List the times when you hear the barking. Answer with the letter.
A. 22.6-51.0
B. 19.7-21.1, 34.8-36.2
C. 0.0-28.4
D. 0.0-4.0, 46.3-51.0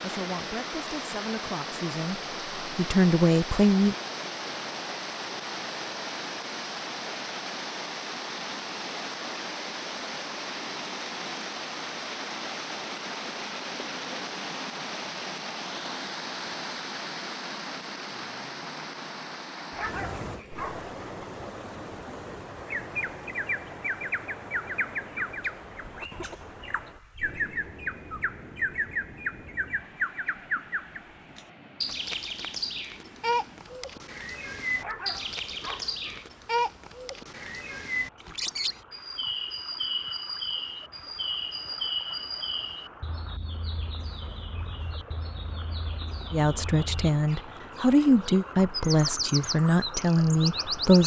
B.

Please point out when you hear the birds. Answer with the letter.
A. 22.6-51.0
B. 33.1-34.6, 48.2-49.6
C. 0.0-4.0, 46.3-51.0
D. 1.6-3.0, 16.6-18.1
A.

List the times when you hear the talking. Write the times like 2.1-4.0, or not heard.
0.0-4.0, 46.3-51.0.